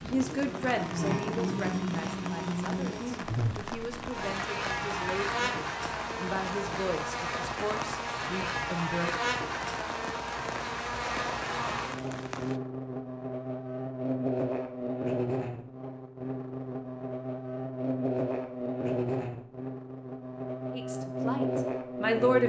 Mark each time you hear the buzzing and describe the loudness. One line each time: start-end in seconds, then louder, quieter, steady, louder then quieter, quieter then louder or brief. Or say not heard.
0.0-22.4 steady.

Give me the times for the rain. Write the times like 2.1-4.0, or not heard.
0.0-12.6.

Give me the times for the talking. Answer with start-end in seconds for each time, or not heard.
0.0-9.1, 20.7-22.4.